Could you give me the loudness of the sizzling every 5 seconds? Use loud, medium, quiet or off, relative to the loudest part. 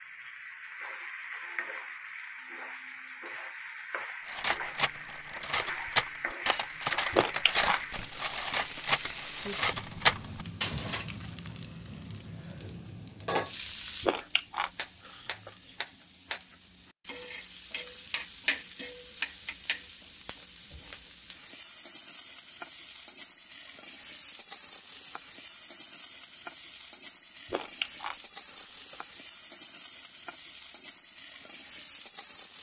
loud, loud, loud, loud, medium, medium, medium.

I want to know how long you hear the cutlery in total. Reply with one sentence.
You can hear the cutlery for 7 seconds altogether.